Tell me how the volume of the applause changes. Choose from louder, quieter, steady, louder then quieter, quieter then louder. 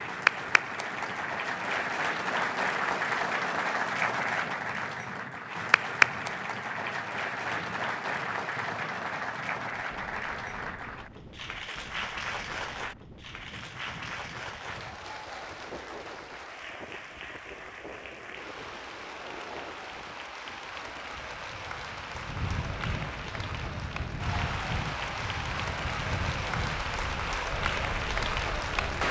quieter then louder.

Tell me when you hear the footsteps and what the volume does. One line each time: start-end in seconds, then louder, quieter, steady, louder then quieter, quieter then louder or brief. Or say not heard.
not heard.